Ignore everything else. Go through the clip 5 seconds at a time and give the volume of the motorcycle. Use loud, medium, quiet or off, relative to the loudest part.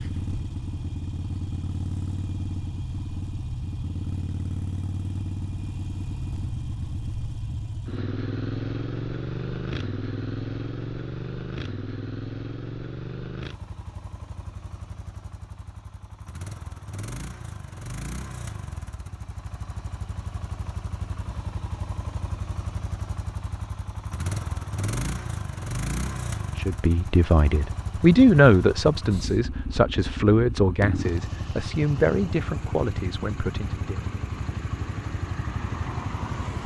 loud, loud, loud, medium, loud, loud, loud, loud.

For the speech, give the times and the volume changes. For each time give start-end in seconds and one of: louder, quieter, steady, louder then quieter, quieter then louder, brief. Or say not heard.
26.6-34.0 quieter.